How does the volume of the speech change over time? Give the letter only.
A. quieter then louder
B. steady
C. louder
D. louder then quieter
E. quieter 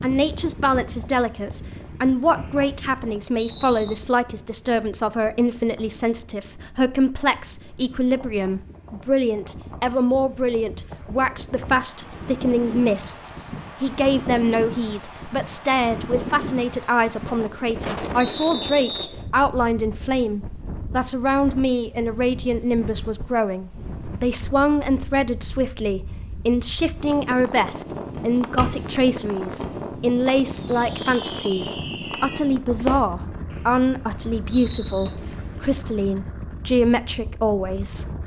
B.